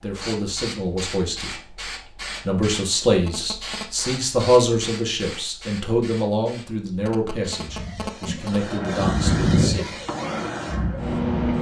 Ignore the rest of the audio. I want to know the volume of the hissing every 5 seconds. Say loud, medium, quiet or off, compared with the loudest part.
medium, loud, loud.